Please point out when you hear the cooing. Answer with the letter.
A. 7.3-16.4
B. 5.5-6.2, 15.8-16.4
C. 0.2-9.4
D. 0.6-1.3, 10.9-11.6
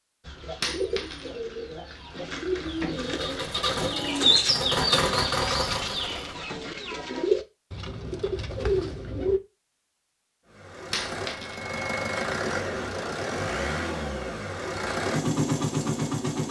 C.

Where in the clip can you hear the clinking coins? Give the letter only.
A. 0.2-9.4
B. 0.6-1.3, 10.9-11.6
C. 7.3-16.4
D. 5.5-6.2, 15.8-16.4
B.